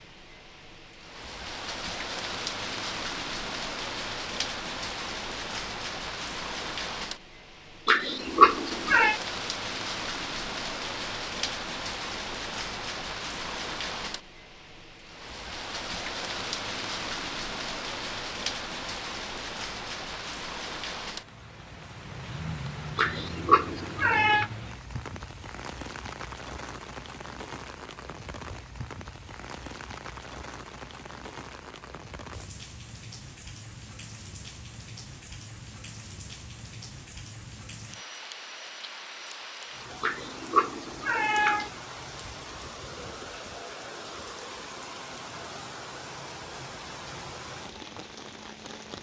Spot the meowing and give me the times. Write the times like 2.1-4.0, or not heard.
7.8-9.2, 22.9-24.5, 40.0-41.7.